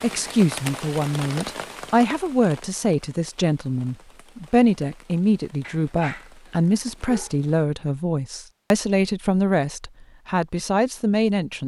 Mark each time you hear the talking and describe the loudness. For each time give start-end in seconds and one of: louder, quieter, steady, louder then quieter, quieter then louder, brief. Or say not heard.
0.0-11.6 steady.